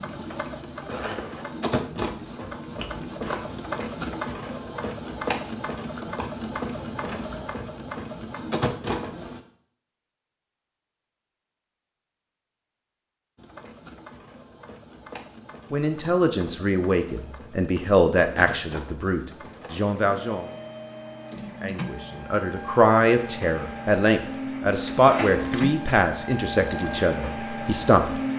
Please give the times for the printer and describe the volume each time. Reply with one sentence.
The printer can be heard from 0.0 to 9.4 s, at a steady volume; and from 13.3 to 28.3 s, getting louder.